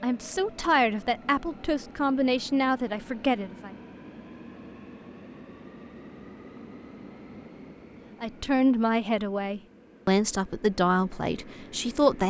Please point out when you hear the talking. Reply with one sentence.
The talking can be heard from 0.0 to 3.7 s and from 8.2 to 12.2 s.